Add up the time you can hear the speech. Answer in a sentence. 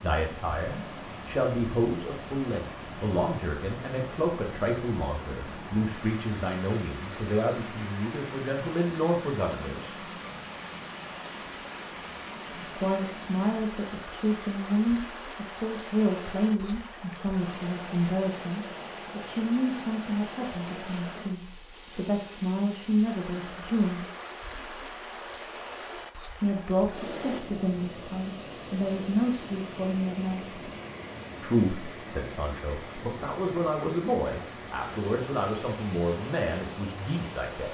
You can hear the speech for 32 seconds altogether.